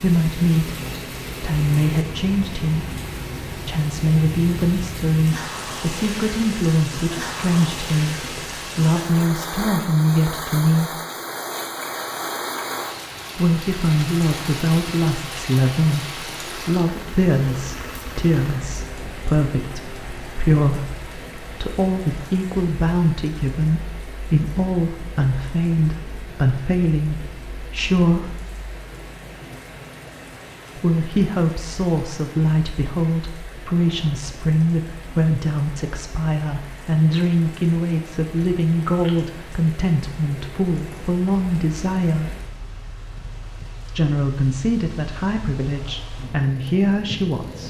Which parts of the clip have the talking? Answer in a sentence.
You can hear the talking from 0.0 to 0.8 s, from 1.4 to 10.9 s, from 13.3 to 28.4 s, from 30.8 to 42.4 s and from 43.9 to 47.6 s.